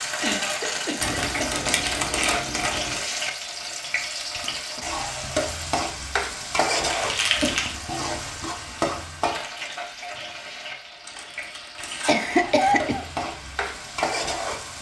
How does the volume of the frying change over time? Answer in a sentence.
The volume of the frying stays about the same.